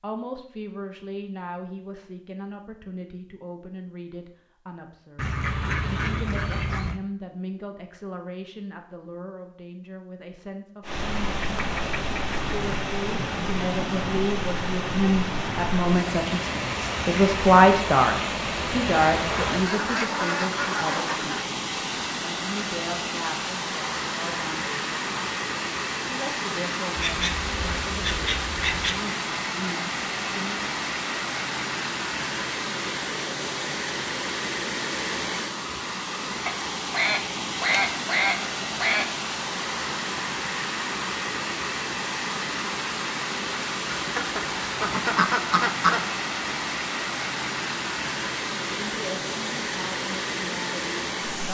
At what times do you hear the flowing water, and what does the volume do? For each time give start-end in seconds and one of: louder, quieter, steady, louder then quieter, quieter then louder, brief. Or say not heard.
10.8-51.4 steady.